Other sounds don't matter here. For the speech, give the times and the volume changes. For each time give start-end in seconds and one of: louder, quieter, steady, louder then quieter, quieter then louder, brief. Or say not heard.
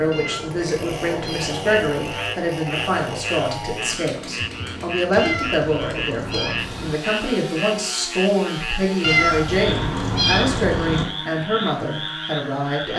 0.0-12.9 steady.